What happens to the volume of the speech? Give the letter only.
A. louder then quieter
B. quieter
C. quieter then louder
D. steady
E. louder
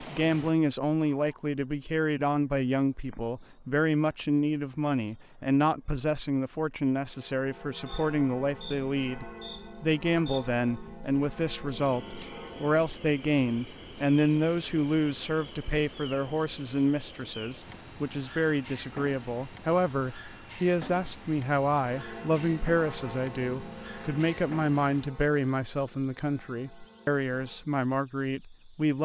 D.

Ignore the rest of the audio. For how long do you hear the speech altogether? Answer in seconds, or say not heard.
29 s.